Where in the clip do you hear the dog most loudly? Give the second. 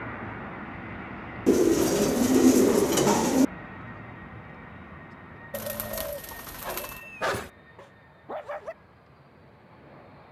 7 s.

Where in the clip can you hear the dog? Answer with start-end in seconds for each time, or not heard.
6.7-8.8.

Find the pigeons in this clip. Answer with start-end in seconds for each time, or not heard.
1.4-3.5, 5.5-7.0.